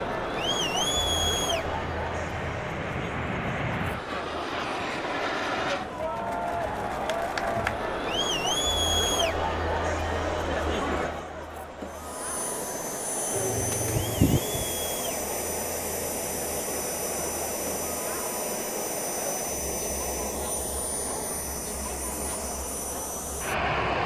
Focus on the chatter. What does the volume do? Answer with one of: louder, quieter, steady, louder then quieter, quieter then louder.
quieter.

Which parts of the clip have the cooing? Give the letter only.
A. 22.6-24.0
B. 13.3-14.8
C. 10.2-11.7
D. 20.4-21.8
B.